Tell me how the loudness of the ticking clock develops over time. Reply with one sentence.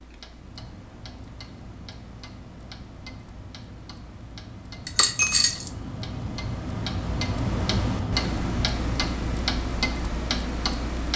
The loudness of the ticking clock goes up.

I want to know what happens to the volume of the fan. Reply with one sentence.
The volume of the fan goes up.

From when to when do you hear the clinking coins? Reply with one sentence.
You can hear the clinking coins from 4.8 to 5.7 s.